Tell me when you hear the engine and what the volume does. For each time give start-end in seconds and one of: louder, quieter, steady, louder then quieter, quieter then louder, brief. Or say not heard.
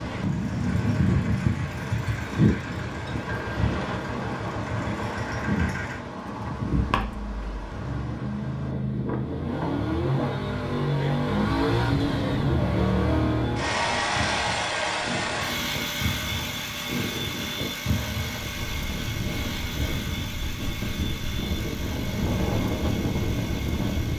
0.1-24.1 louder then quieter.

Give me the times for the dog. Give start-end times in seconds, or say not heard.
not heard.